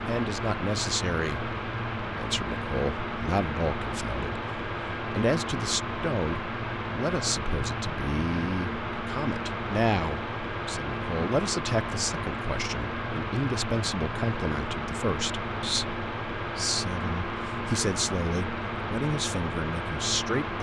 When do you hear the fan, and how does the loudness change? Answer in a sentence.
The fan can be heard from 0.0 to 20.5 s, at a steady volume.